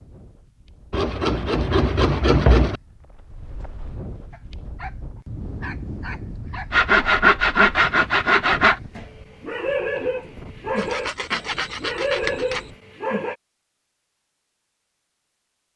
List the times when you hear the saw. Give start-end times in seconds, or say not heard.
0.9-2.8, 6.7-8.8, 10.8-12.7.